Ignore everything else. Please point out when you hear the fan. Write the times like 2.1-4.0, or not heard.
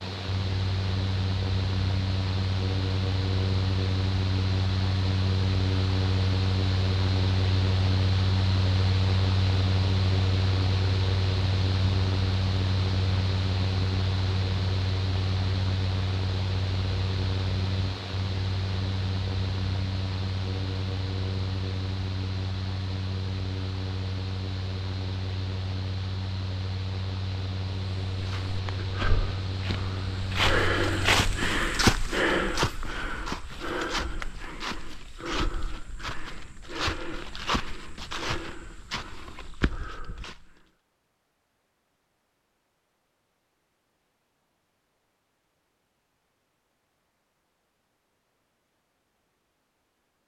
0.0-31.6.